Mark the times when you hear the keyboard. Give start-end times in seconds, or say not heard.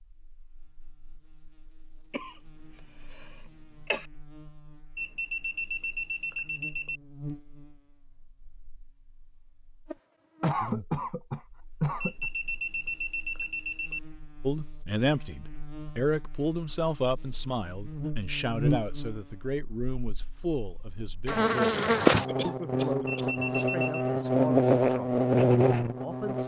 not heard.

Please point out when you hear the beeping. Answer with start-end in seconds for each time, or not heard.
5.0-7.0, 12.0-14.0, 23.1-24.1.